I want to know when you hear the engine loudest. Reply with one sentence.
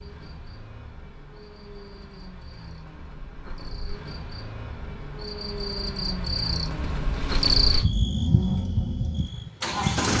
The loudest moment of the engine is at 10 seconds.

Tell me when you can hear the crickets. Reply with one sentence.
You can hear the crickets from 0.0 to 10.1 s.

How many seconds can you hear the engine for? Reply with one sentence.
The engine can be heard for 10 seconds in total.